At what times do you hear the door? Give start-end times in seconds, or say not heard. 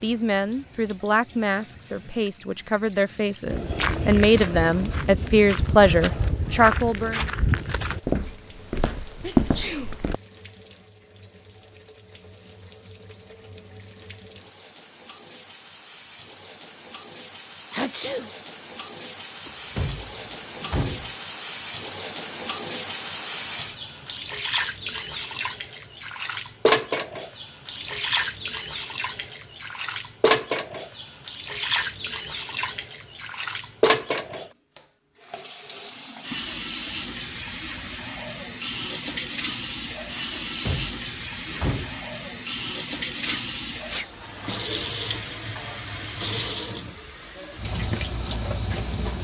19.4-21.1, 40.4-42.0.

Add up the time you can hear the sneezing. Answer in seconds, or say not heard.
2 s.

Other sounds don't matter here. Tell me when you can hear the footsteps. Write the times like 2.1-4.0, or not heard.
3.5-10.2.